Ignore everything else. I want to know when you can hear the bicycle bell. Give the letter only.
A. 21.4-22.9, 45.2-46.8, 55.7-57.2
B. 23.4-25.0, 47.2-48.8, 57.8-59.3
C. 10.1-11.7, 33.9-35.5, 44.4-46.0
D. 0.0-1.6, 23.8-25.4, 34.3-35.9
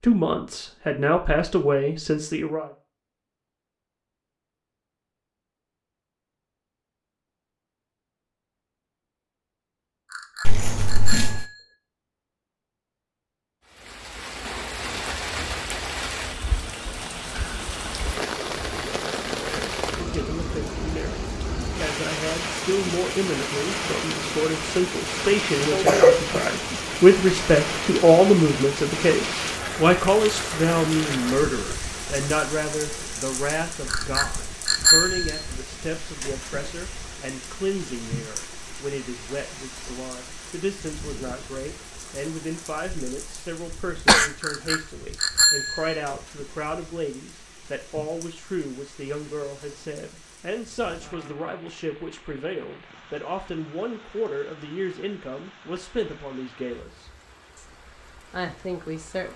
C.